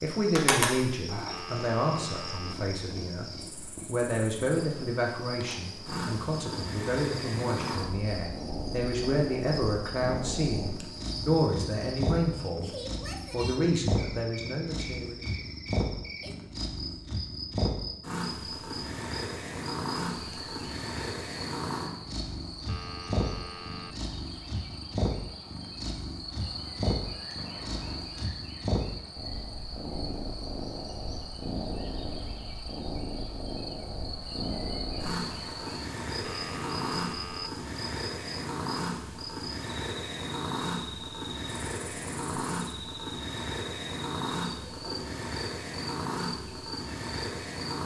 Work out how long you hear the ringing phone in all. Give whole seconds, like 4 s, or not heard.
4 s.